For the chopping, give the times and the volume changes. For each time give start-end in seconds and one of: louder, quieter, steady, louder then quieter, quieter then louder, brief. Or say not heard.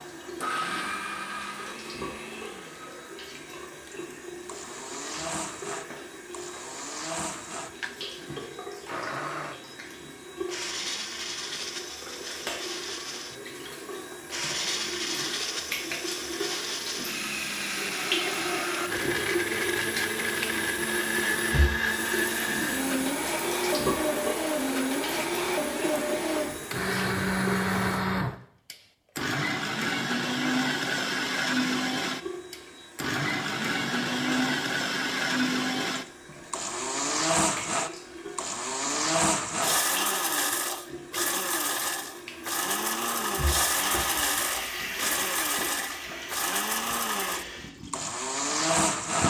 not heard.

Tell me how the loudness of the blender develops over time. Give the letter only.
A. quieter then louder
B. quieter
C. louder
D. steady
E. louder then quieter
C.